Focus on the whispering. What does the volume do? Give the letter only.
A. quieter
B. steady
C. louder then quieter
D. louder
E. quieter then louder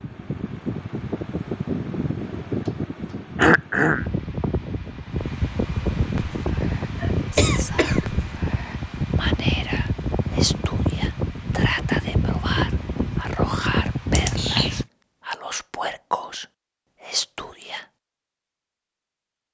D.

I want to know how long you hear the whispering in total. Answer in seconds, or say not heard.
12 s.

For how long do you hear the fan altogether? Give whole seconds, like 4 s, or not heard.
15 s.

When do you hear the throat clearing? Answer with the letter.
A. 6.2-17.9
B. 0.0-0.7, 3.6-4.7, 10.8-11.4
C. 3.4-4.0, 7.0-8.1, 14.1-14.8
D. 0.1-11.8
C.